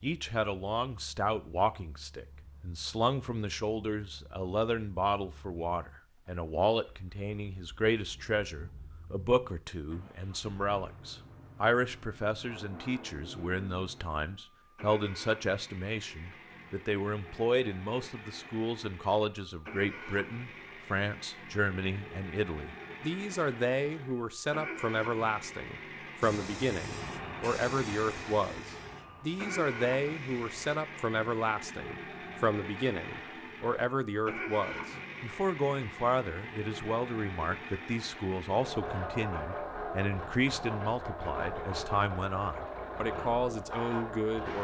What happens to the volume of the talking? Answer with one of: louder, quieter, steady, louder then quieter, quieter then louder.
steady.